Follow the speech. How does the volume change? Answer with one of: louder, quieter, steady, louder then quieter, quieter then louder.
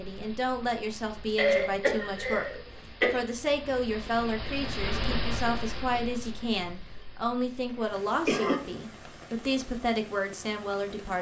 steady.